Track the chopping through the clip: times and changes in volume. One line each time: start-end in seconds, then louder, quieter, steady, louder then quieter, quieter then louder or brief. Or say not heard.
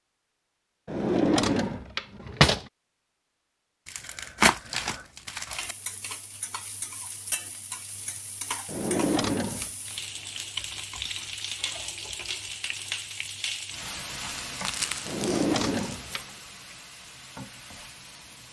not heard.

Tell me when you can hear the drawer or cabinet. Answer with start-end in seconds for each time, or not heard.
0.8-2.6, 8.7-9.7, 15.1-16.2.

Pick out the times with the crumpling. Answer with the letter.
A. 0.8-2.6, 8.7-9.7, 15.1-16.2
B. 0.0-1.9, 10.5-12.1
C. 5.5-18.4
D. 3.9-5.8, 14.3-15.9
D.